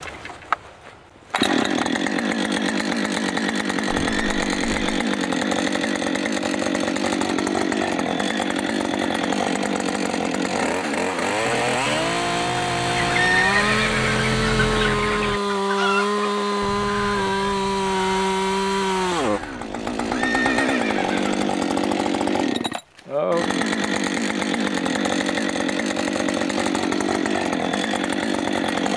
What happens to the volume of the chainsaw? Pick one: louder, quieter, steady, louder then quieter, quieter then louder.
steady.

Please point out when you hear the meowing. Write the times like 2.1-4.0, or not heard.
not heard.